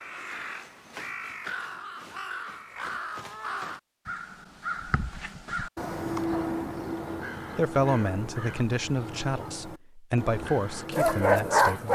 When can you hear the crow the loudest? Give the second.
6 s.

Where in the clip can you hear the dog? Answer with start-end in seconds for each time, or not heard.
10.4-11.9.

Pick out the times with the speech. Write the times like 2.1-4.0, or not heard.
7.5-11.9.